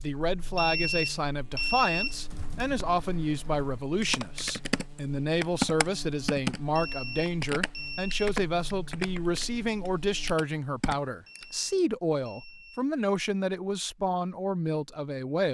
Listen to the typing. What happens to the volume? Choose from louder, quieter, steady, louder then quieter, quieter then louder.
louder then quieter.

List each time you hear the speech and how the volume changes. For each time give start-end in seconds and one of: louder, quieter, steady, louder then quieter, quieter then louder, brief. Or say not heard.
0.0-15.4 steady.